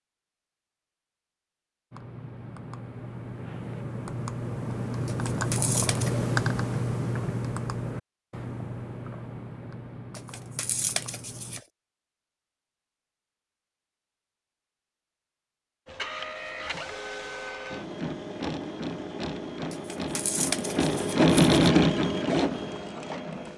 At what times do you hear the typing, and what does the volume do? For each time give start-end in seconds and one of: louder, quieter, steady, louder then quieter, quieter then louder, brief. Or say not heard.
1.9-11.7 louder then quieter.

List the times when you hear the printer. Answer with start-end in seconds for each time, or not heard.
15.8-23.5.